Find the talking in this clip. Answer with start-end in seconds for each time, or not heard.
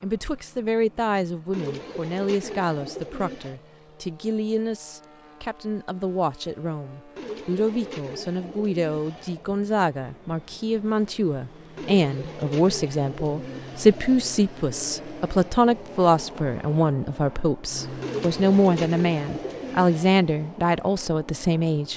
0.0-21.9.